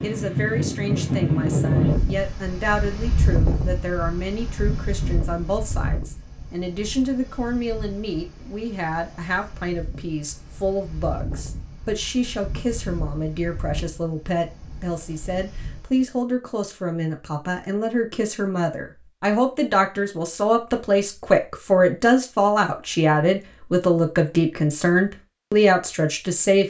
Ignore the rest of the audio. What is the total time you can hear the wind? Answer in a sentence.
You can hear the wind for 16 seconds altogether.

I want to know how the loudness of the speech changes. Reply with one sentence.
The loudness of the speech goes up.